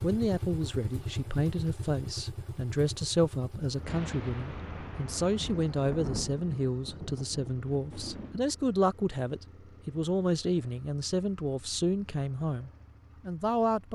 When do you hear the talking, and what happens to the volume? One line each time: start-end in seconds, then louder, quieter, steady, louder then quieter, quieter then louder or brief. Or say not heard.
0.0-13.9 steady.